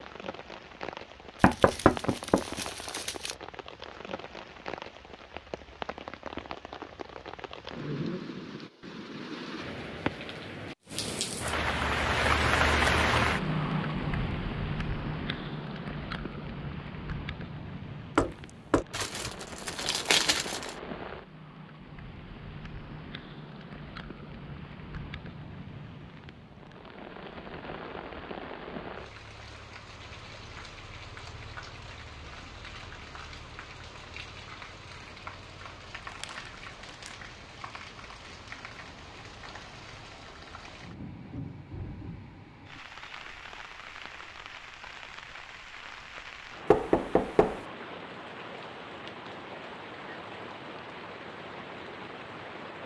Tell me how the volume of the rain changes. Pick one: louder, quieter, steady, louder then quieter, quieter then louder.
louder then quieter.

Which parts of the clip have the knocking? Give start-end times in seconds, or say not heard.
1.4-2.6, 18.1-18.9, 46.7-47.6.